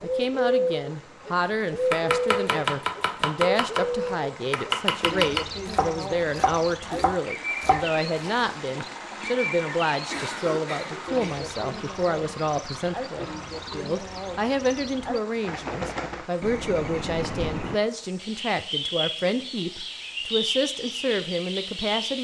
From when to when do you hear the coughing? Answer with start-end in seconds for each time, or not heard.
10.1-11.5.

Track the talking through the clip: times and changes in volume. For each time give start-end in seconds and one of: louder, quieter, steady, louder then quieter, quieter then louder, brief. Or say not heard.
0.0-22.1 steady.